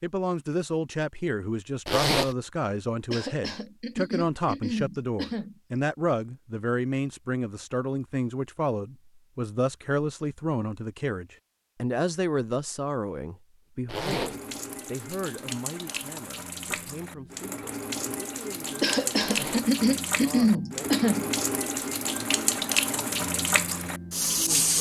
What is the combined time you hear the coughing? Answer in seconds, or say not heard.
5 s.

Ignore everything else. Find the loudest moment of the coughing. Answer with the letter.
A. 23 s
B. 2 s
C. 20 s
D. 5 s
C.